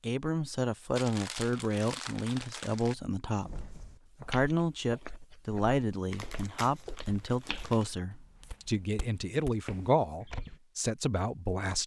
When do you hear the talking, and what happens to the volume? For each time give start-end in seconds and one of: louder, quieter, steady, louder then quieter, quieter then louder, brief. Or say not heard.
0.0-11.8 steady.